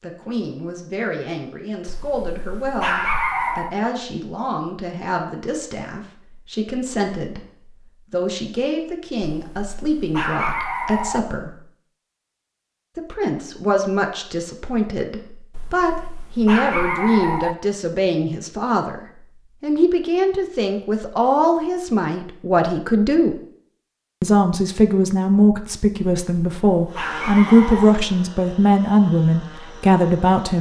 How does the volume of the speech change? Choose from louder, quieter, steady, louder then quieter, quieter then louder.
louder.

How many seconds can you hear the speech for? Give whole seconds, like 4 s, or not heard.
28 s.